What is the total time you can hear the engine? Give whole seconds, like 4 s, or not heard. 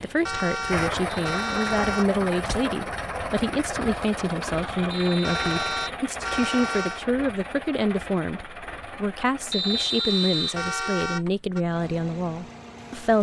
13 s.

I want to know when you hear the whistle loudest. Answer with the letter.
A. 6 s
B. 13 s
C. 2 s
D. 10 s
D.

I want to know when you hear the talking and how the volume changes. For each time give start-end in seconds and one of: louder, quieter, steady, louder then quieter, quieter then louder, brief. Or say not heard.
0.0-13.1 steady.